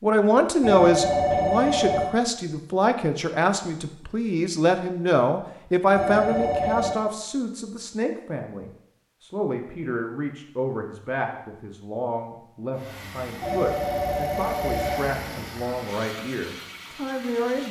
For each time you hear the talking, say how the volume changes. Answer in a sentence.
You can hear the talking from 0.0 to 17.6 s, getting quieter.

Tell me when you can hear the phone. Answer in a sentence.
You can hear the phone from 0.6 to 2.1 s, from 6.0 to 7.0 s and from 13.4 to 15.5 s.